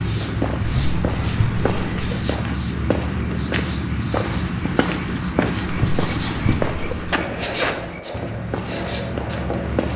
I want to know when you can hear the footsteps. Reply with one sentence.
The footsteps can be heard from 0.0 to 9.9 s.